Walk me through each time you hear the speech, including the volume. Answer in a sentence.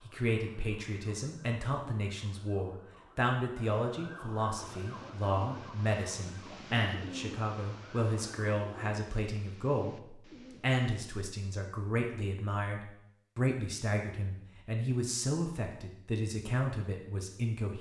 You can hear the speech from 0.1 to 17.7 s, at a steady volume.